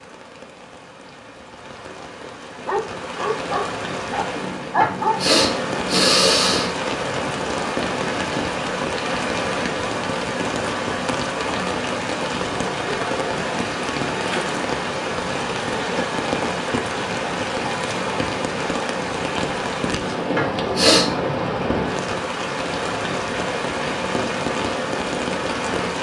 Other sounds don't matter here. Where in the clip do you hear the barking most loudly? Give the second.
5 s.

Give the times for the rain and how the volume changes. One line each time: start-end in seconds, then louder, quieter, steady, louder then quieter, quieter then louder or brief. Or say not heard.
0.0-25.9 louder.